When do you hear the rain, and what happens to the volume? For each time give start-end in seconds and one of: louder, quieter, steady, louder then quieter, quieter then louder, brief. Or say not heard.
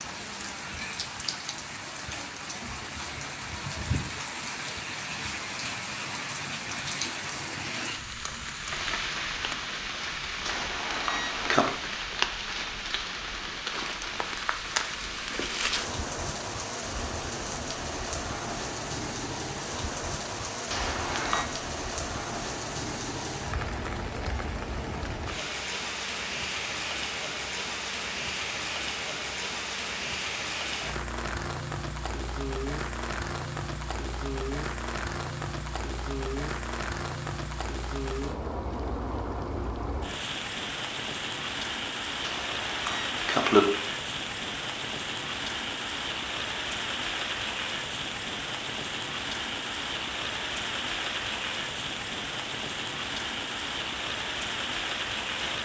0.0-55.6 steady.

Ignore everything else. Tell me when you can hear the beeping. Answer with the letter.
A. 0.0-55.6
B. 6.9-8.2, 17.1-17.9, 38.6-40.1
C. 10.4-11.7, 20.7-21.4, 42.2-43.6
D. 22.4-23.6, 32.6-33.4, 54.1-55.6
C.